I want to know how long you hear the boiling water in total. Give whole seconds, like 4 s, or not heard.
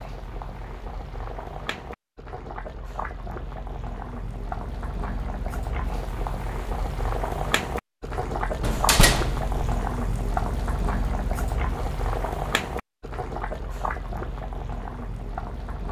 16 s.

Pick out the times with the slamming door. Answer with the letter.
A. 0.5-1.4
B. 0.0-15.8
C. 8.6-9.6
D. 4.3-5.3
C.